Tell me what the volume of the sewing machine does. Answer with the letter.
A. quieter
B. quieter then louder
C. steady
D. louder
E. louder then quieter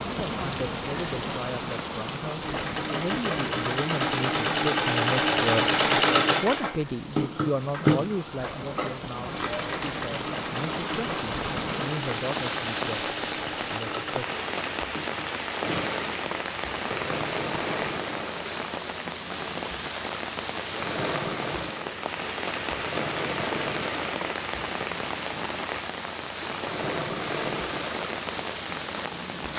A.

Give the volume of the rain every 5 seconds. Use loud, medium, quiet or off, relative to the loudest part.
loud, medium, loud, loud, loud, loud.